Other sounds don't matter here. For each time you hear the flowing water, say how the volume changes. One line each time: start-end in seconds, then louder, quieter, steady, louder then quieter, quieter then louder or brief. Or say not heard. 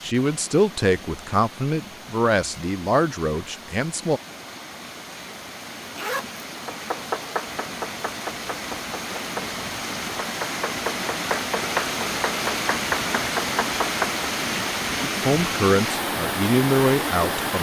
0.0-17.5 louder.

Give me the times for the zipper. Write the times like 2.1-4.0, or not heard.
5.8-6.4.